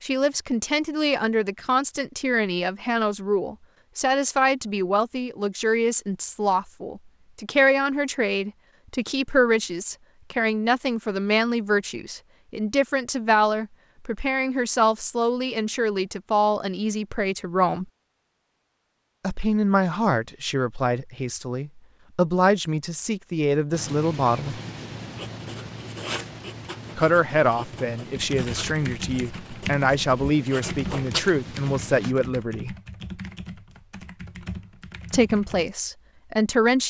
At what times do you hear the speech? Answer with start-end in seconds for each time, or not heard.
0.0-17.9, 19.2-24.6, 26.9-32.8, 35.1-36.8.